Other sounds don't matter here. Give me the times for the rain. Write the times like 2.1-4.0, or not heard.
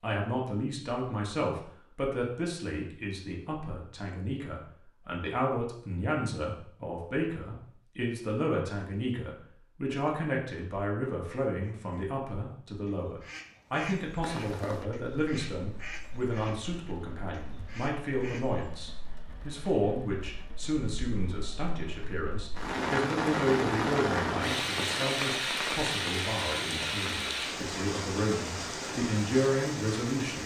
14.2-30.4.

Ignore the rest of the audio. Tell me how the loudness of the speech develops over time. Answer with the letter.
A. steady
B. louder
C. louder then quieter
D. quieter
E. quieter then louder
A.